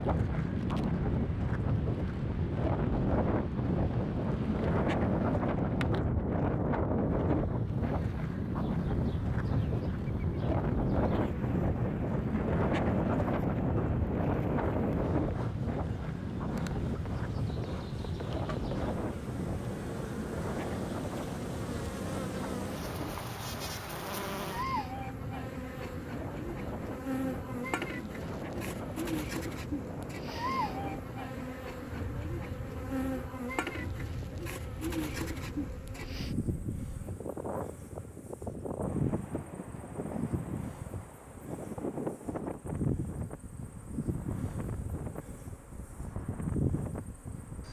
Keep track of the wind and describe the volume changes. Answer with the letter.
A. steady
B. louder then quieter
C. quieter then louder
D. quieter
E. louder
D.